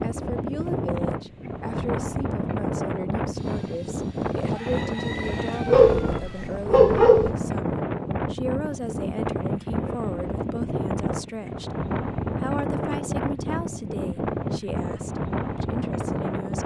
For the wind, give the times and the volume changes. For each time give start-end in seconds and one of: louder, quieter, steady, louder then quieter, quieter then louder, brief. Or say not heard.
0.0-16.6 steady.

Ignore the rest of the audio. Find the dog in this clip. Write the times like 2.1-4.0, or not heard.
5.7-7.3.